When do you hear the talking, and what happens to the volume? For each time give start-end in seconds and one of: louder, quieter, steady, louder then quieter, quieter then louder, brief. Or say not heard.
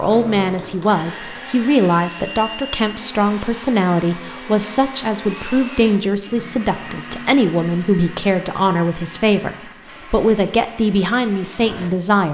0.0-12.2 steady.